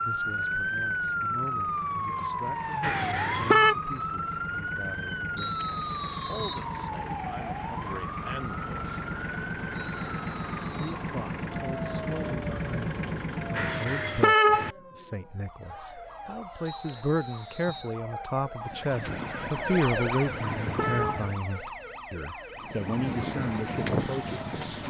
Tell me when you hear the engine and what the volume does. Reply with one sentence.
You can hear the engine from 0.0 to 13.8 s, getting louder; briefly from 18.6 to 21.4 s; and briefly from 22.6 to 24.8 s.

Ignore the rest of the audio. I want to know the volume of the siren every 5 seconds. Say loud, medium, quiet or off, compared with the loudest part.
loud, medium, medium, medium, medium.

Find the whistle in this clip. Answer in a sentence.
The whistle can be heard from 5.3 to 6.7 s, from 9.8 to 11.0 s and from 16.6 to 17.9 s.